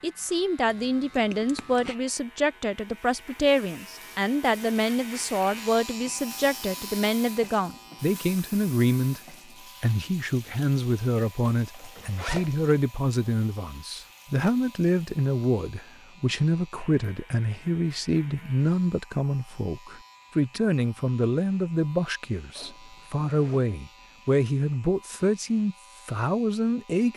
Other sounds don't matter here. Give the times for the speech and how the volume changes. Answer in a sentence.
The speech can be heard from 0.0 to 27.1 s, at a steady volume.